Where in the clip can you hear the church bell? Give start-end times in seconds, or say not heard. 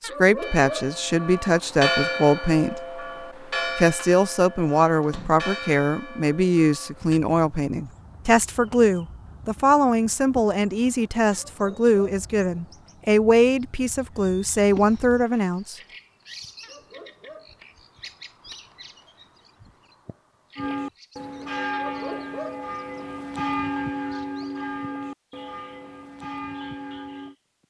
0.3-7.2, 20.6-27.4.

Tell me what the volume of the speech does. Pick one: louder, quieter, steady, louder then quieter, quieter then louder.
steady.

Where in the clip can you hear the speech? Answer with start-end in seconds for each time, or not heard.
0.0-3.0, 3.6-15.8.